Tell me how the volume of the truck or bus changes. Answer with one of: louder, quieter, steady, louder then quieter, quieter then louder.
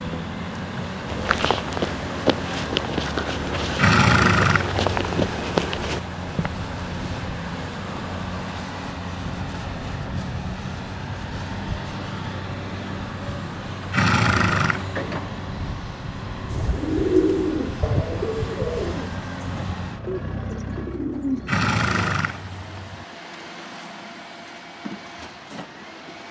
quieter.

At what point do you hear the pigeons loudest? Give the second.
17 s.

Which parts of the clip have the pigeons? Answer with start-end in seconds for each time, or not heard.
16.5-21.7.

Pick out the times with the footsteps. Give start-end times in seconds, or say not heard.
1.1-6.5.